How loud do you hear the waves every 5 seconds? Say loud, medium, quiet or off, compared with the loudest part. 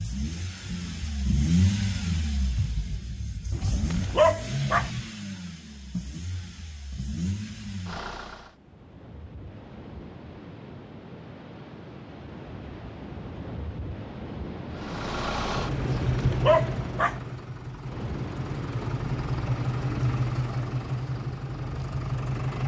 off, medium, loud, loud, medium.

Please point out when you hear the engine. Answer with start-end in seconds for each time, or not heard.
0.0-8.6, 14.7-22.6.